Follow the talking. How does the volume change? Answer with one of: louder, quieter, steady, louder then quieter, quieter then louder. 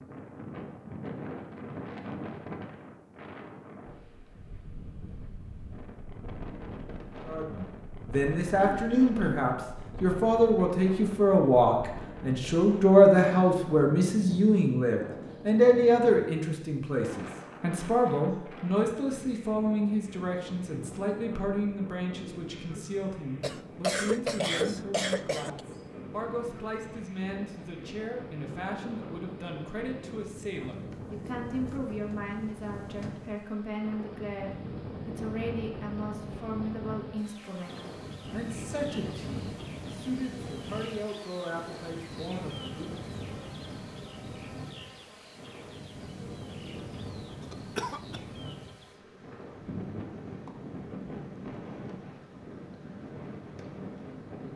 quieter.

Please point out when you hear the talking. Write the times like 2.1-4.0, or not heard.
7.2-43.1.